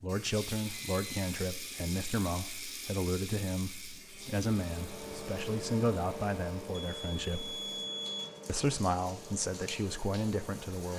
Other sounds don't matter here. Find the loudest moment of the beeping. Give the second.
8 s.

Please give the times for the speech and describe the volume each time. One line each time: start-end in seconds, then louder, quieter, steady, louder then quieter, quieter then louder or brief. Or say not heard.
0.0-7.5 steady
8.4-10.9 brief.